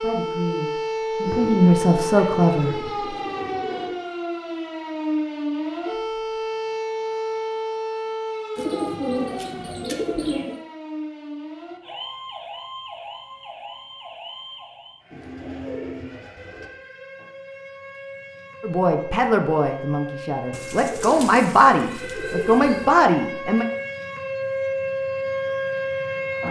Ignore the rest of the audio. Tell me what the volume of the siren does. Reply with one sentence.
The volume of the siren goes down, then up.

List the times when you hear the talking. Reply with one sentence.
You can hear the talking from 0.0 to 2.8 s and from 18.6 to 23.6 s.